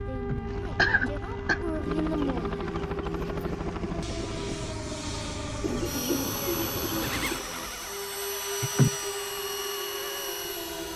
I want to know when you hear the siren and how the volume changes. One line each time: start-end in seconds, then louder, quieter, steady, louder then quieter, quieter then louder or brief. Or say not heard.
0.0-10.9 steady.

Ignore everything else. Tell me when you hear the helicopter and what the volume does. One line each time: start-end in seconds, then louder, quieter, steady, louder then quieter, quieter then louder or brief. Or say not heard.
0.0-10.9 steady.